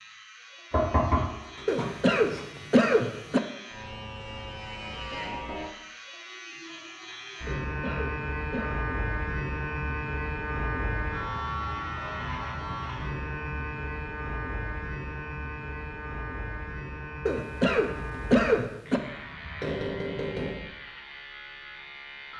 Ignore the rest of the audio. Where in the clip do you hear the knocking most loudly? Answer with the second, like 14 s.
1 s.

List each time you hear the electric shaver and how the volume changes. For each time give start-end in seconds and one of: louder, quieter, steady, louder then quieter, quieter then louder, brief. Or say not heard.
0.0-22.3 louder then quieter.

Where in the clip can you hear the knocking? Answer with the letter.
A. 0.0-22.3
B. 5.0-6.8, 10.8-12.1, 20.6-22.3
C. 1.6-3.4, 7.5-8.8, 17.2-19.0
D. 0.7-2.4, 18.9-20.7
D.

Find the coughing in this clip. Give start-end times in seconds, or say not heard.
1.6-3.4, 7.5-8.8, 17.2-19.0.